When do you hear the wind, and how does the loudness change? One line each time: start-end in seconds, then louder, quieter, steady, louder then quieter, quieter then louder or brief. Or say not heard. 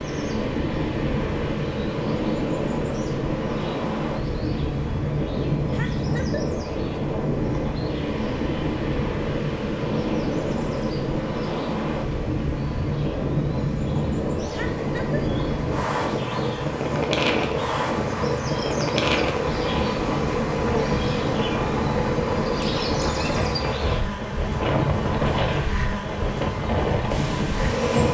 0.0-28.0 steady.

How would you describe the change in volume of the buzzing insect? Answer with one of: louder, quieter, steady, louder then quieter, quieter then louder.
louder.